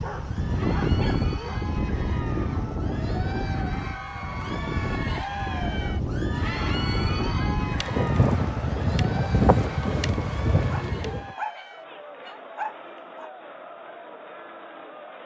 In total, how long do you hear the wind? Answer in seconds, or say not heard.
11 s.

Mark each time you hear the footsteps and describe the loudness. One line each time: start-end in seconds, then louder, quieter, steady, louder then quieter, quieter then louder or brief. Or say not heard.
not heard.